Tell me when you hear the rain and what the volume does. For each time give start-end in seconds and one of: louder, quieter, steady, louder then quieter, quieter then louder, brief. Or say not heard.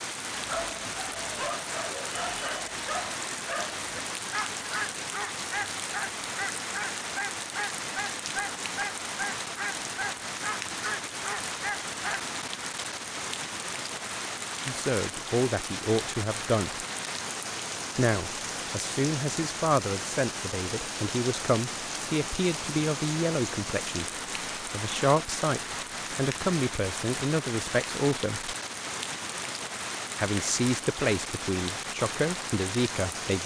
0.0-33.4 steady.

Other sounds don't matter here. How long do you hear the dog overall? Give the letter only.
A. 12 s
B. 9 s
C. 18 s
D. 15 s
A.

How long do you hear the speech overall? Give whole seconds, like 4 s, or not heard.
16 s.